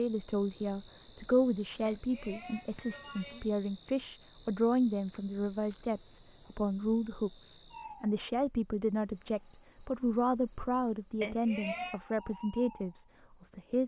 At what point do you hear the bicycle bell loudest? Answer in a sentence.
The loudest moment of the bicycle bell is at 12 seconds.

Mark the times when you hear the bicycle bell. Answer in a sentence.
The bicycle bell can be heard from 1.9 to 3.5 s and from 11.2 to 12.0 s.